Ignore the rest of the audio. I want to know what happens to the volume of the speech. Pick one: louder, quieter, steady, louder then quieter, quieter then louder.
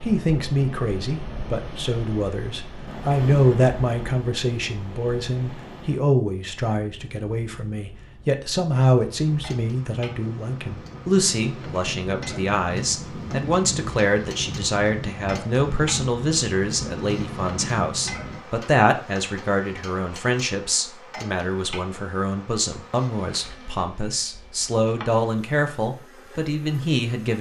steady.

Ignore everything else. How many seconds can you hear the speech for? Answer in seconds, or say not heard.
27 s.